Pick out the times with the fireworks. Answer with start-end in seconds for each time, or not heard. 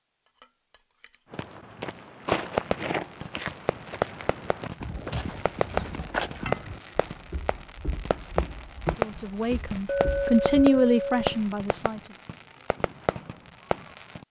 2.2-14.2.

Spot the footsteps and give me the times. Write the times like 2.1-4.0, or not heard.
1.3-10.7.